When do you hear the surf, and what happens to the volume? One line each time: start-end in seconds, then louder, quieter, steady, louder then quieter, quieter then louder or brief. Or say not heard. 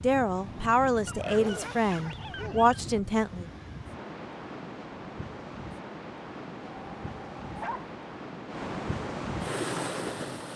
0.0-10.5 louder.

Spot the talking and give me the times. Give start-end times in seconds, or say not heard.
0.0-3.5.